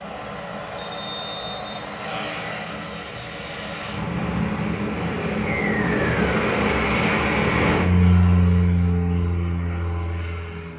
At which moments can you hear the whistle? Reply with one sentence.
The whistle can be heard from 0.8 to 1.8 s and from 5.5 to 6.4 s.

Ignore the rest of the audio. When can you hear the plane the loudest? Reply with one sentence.
The loudest moment of the plane is at 8 seconds.